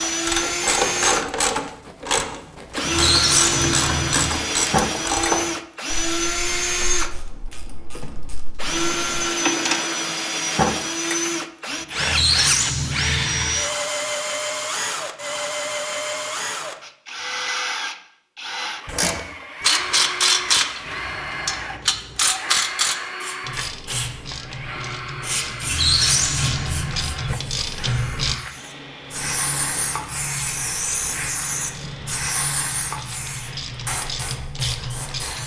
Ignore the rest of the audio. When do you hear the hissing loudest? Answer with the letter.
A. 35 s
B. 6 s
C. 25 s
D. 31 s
D.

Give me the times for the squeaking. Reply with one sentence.
You can hear the squeaking from 2.8 to 4.3 s, from 11.9 to 13.5 s and from 25.6 to 27.1 s.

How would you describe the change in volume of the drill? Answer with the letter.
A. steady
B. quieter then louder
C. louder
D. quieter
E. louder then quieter
D.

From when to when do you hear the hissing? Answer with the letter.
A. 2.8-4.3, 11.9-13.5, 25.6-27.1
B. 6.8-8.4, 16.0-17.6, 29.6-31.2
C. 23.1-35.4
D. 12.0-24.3
C.